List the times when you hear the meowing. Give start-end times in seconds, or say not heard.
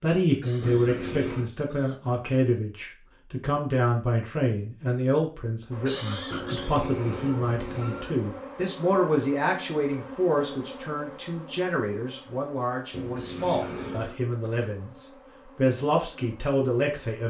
0.6-1.5, 6.3-8.2, 12.9-14.2.